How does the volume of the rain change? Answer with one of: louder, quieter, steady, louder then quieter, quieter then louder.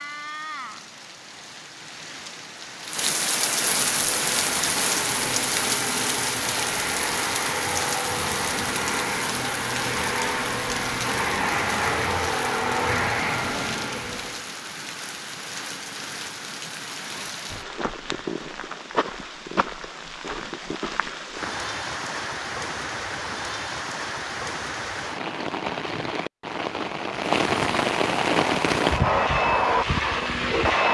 quieter then louder.